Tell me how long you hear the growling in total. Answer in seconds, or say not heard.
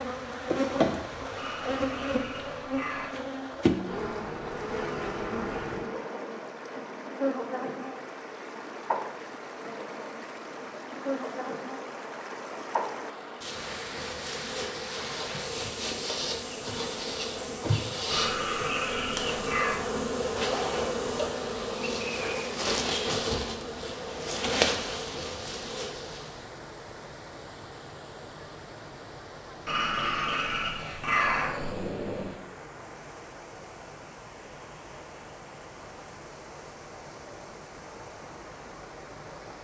6 s.